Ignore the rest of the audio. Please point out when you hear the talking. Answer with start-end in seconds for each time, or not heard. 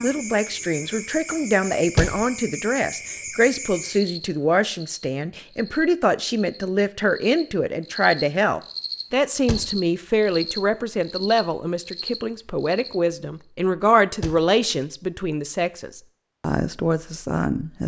0.0-17.8.